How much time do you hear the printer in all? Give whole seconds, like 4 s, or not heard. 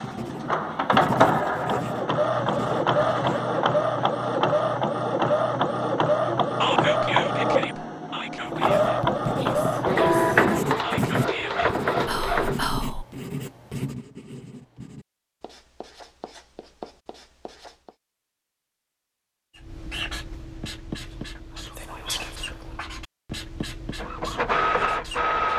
14 s.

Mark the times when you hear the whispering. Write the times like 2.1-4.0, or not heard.
6.6-13.1, 20.9-22.9.